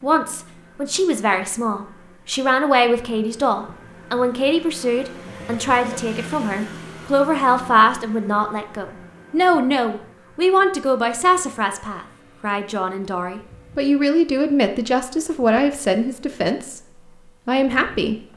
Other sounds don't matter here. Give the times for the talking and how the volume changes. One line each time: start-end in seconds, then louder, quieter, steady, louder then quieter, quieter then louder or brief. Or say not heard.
0.0-18.3 steady.